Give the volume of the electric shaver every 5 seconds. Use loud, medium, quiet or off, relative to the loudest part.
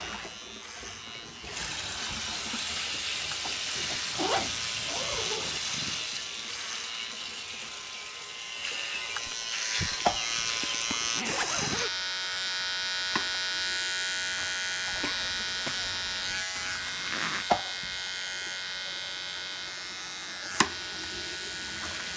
medium, medium, loud, loud, medium.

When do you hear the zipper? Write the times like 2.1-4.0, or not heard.
3.8-5.6, 10.0-11.9, 16.6-17.4.